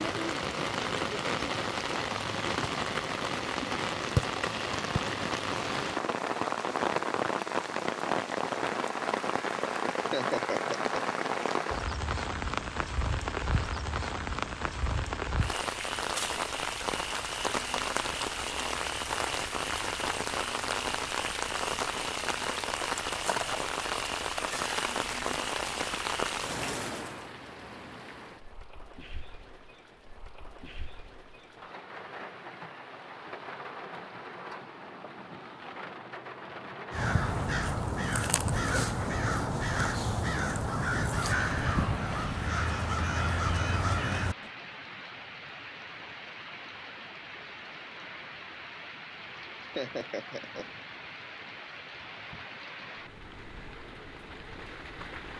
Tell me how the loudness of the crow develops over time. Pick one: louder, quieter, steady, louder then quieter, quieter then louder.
steady.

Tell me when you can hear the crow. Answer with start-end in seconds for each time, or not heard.
36.9-44.5.